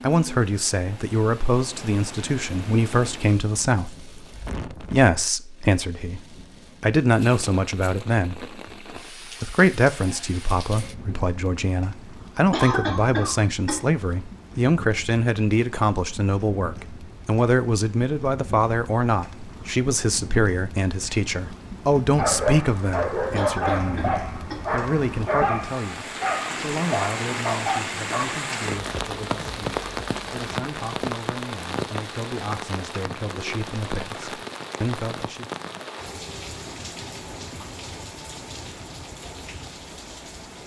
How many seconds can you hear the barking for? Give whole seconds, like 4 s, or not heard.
6 s.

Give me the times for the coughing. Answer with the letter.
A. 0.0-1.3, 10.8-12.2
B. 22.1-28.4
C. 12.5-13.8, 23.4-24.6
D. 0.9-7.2
C.